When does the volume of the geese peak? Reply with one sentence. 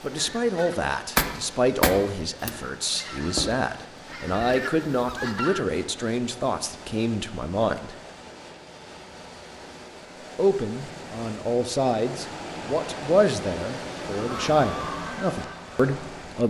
The loudest moment of the geese is at 1 second.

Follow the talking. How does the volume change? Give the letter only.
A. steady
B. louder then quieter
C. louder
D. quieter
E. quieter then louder
A.